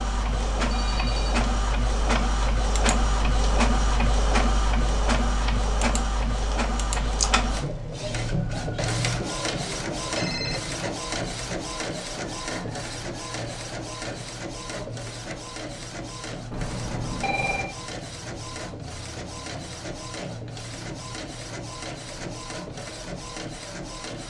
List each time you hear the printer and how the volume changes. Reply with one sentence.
The printer can be heard from 0.0 to 24.2 s, getting quieter.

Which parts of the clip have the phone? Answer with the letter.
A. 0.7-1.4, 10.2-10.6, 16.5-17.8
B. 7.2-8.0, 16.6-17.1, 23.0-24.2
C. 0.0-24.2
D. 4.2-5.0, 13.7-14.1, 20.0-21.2
A.